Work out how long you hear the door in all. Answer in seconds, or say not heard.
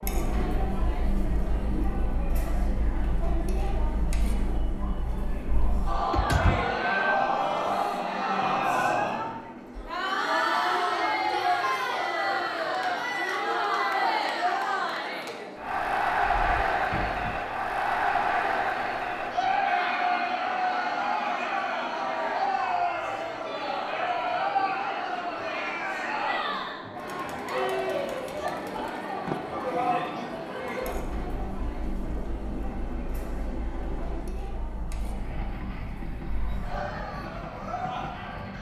3 s.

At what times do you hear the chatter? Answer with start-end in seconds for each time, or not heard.
0.0-38.5.